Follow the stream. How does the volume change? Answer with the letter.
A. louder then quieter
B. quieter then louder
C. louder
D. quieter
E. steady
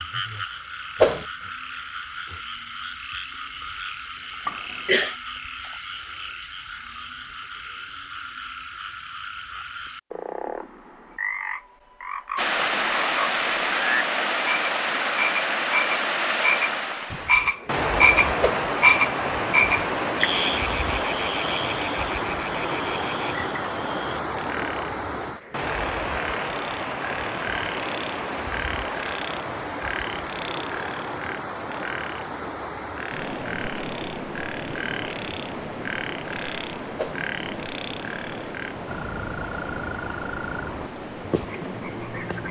D.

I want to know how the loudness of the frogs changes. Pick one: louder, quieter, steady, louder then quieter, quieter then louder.
louder then quieter.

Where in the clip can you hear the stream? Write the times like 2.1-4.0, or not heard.
12.3-42.4.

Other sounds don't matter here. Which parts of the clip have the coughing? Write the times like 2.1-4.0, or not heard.
4.5-5.2.